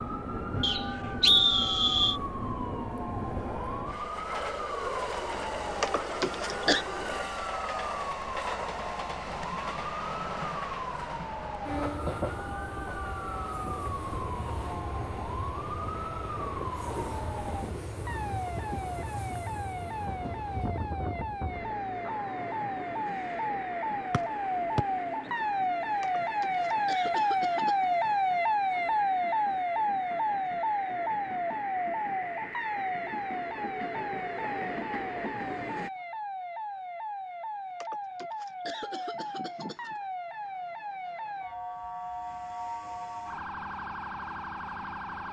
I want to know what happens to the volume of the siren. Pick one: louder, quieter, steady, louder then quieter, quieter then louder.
louder then quieter.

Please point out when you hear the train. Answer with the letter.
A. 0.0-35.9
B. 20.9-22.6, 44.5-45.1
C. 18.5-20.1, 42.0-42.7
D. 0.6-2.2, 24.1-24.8
A.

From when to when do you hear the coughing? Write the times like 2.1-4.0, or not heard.
5.8-6.8, 26.0-27.9, 37.8-40.0.